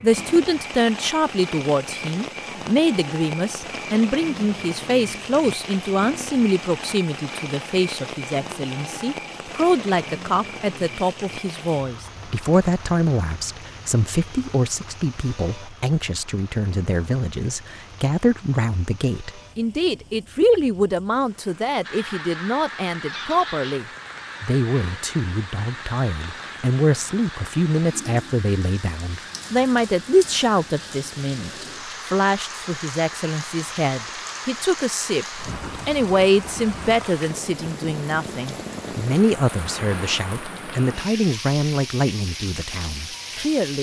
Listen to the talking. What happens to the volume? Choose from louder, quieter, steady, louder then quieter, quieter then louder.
steady.